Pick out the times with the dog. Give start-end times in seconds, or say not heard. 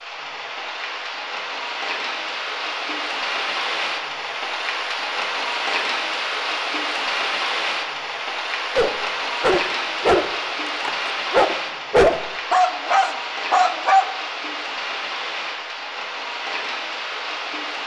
8.8-14.1.